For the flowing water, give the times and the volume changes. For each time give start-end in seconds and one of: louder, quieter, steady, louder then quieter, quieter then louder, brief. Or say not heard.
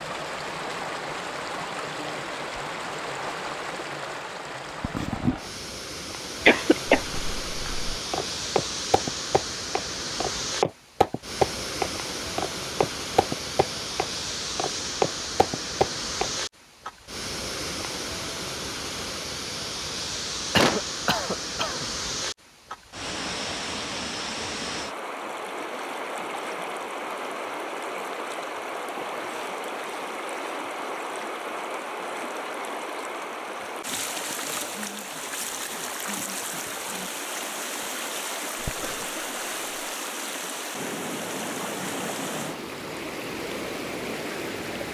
0.0-44.8 steady.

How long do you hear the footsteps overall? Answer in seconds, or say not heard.
9 s.